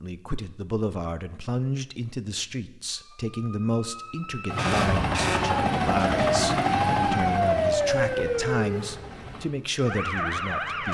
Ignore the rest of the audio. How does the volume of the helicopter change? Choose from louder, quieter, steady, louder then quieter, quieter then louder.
quieter.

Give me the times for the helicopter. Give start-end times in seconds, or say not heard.
4.5-9.5.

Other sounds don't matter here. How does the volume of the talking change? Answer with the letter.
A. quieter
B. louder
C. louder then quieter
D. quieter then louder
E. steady
E.